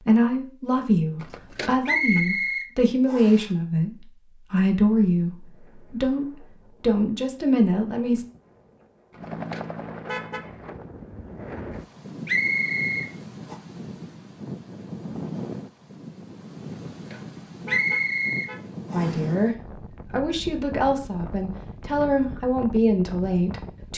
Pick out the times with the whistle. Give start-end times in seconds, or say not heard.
1.9-3.5, 12.2-13.6, 17.6-19.2.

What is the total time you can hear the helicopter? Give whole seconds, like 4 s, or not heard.
2 s.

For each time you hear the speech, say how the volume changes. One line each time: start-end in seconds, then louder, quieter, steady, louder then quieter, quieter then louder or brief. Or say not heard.
0.0-8.2 steady
18.9-23.9 quieter then louder.